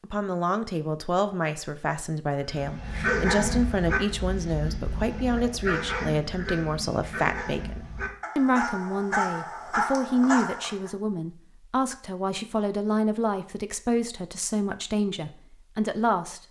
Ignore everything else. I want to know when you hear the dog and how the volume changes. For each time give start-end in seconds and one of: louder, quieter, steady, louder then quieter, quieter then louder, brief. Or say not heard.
2.5-10.9 quieter then louder.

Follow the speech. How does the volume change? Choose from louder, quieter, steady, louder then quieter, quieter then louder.
steady.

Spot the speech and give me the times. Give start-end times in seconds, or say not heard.
0.0-16.4.